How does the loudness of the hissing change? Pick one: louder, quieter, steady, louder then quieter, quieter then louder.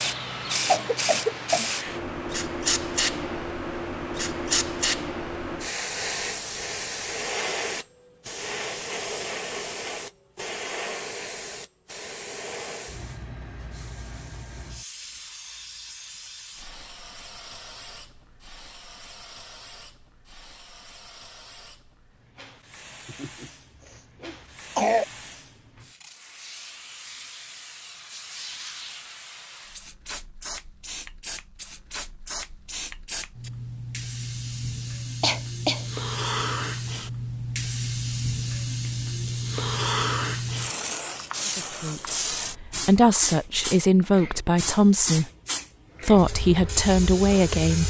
quieter then louder.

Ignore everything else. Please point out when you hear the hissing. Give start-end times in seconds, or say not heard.
0.0-47.8.